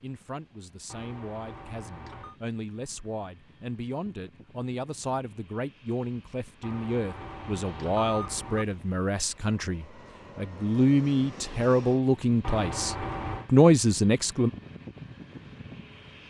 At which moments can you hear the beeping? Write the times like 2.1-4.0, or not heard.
0.9-2.4, 6.6-8.7, 12.4-13.5.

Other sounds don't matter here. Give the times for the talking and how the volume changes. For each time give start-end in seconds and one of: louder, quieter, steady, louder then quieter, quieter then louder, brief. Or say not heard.
0.0-14.5 louder.